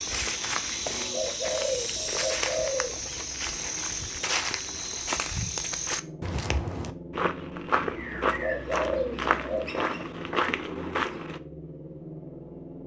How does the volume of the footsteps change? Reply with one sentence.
The loudness of the footsteps stays about the same.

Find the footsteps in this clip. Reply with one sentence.
The footsteps can be heard from 0.0 to 11.4 s.